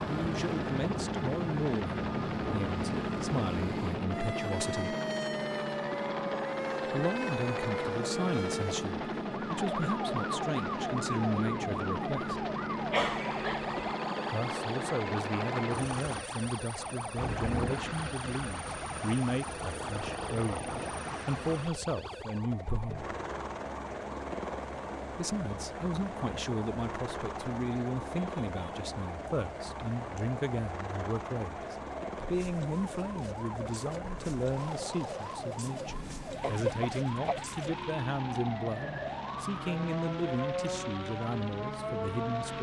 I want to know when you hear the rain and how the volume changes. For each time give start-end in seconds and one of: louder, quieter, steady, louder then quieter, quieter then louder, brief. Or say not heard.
not heard.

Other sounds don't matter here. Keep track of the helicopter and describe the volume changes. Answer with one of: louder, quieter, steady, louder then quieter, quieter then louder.
quieter.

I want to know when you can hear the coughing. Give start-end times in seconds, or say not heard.
12.9-13.9, 36.4-37.4.